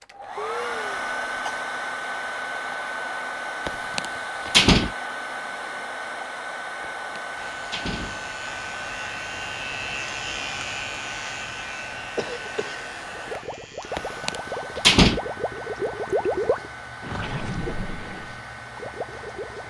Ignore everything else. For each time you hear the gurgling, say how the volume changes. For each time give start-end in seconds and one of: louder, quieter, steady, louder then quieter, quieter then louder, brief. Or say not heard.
13.1-19.6 louder then quieter.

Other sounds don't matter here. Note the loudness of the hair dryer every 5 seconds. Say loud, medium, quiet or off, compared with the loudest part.
loud, loud, medium, medium.